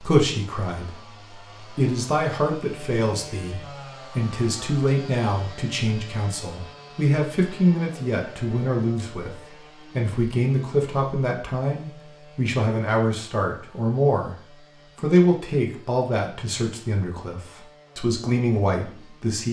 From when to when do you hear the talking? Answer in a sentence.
You can hear the talking from 0.0 to 19.4 s.